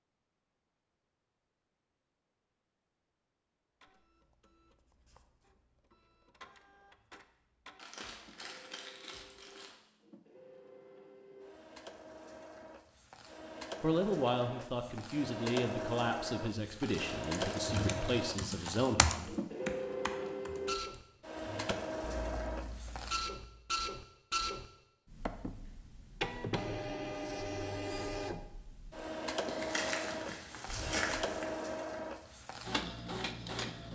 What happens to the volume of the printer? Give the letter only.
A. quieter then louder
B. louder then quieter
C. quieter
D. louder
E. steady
D.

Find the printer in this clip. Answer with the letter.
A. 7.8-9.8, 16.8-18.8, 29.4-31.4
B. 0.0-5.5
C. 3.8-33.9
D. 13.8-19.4
C.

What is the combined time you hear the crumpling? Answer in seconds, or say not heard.
6 s.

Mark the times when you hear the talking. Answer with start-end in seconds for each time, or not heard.
13.8-19.4.